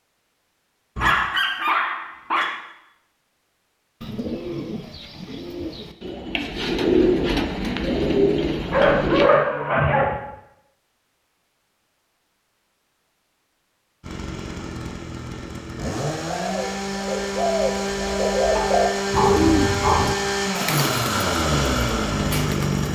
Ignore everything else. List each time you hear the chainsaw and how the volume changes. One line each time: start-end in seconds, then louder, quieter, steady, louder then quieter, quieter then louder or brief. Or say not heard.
14.0-22.9 louder.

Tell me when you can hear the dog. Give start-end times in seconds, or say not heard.
0.9-2.5, 8.7-10.2, 18.6-20.1.